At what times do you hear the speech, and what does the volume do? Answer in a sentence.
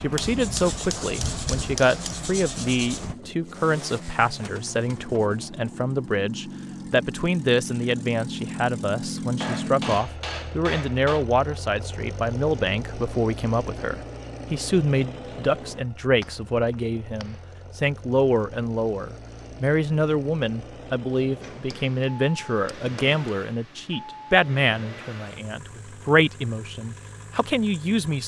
The speech can be heard from 0.0 to 28.2 s, at a steady volume.